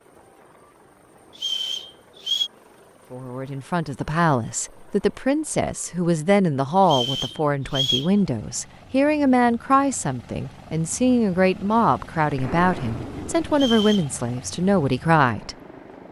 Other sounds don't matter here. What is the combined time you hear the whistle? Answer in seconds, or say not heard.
3 s.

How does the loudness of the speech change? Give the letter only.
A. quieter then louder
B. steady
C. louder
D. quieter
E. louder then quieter
B.